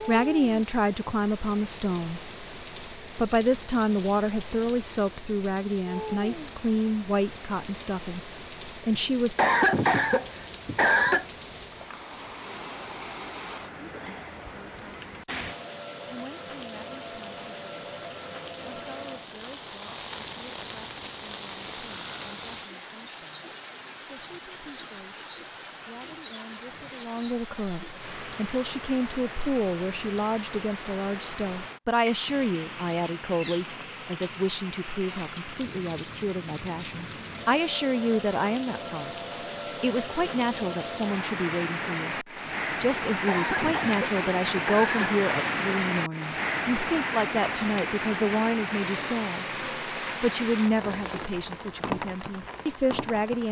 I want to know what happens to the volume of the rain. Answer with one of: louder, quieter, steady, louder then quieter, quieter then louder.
louder.